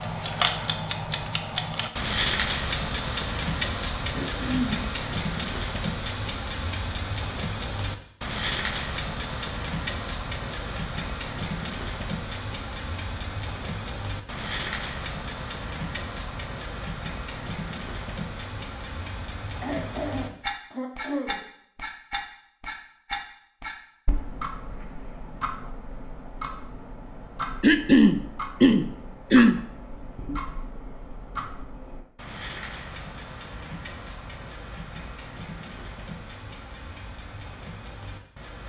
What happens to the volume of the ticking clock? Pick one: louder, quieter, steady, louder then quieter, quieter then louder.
quieter.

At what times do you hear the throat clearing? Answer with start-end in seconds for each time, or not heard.
4.1-4.8, 19.6-21.4, 27.6-29.6.